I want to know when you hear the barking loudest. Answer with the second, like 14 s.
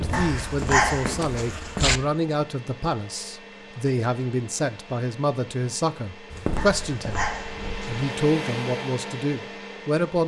1 s.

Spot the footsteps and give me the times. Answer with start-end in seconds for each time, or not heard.
0.0-2.0, 6.3-7.9.